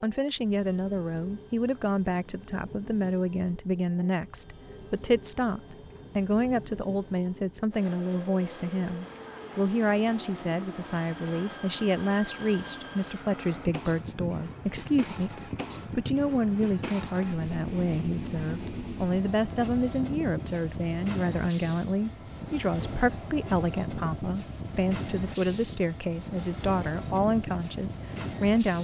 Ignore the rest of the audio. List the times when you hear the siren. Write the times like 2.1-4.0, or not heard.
not heard.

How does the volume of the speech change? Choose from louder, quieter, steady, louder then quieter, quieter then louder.
steady.